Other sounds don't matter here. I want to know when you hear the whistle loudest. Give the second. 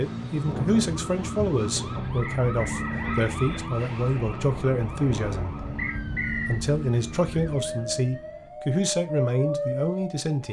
6 s.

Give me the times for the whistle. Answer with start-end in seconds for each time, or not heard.
2.2-3.2, 5.8-6.6.